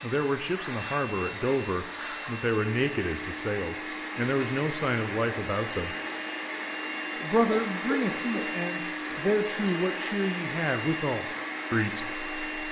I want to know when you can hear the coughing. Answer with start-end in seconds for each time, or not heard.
7.5-8.6.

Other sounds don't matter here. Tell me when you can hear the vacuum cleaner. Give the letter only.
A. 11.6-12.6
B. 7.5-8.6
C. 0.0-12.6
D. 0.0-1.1
C.